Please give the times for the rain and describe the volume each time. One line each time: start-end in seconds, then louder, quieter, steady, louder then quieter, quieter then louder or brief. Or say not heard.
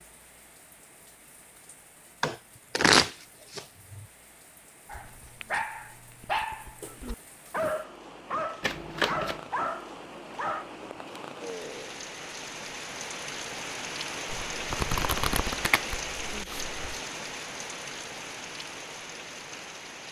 0.0-20.0 louder.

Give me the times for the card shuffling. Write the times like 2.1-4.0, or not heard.
2.2-4.0, 8.6-9.4, 14.3-16.8.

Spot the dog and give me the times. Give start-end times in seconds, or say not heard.
4.8-10.8.